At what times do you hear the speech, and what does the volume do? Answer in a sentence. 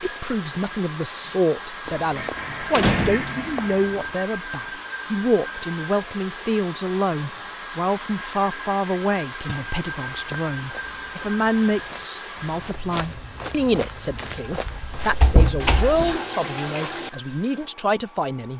The speech can be heard from 0.0 to 18.5 s, at a steady volume.